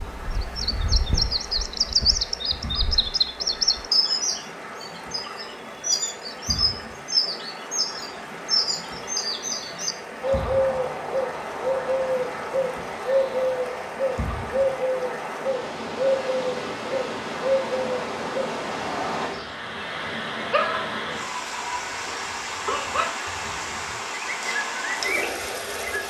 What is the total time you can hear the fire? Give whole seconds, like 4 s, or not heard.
not heard.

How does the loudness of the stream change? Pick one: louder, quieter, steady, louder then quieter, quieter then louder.
louder.